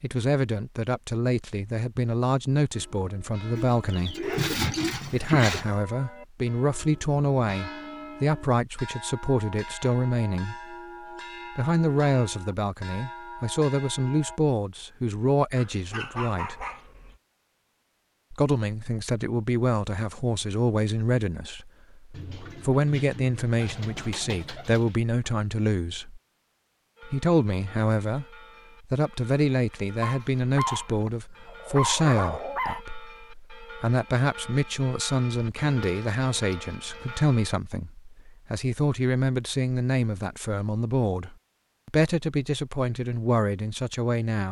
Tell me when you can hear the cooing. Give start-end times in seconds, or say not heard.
3.5-5.7, 22.1-25.0, 35.3-37.2.